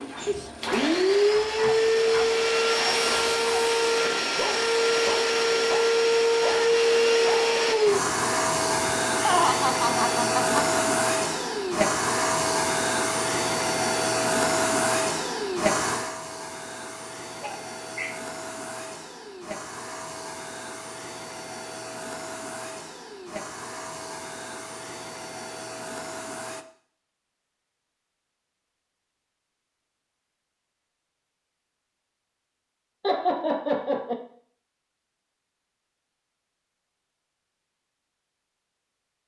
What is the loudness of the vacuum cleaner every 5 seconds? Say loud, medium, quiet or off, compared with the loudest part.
loud, loud, loud, medium, quiet, quiet, off, off.